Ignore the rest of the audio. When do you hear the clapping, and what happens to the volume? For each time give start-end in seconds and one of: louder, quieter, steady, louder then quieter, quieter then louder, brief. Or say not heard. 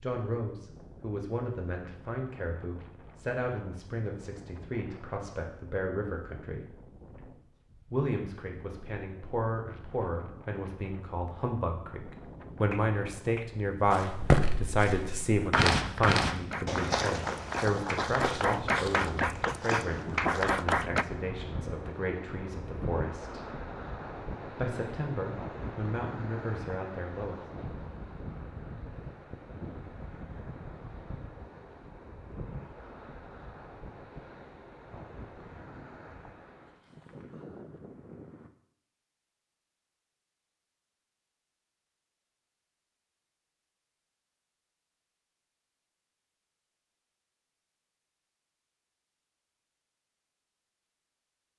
12.7-21.1 louder.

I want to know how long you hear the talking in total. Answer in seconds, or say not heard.
25 s.